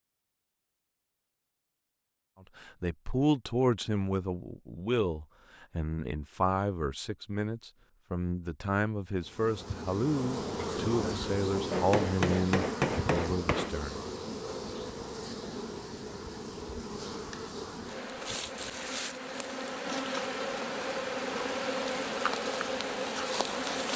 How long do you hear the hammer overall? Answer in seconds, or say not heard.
2 s.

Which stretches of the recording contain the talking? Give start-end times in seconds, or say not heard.
2.5-14.0.